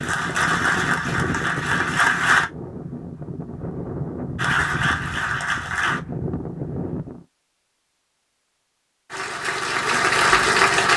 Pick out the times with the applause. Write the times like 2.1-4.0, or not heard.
0.0-2.5, 4.3-6.0, 9.1-10.9.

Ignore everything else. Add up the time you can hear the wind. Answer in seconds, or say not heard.
7 s.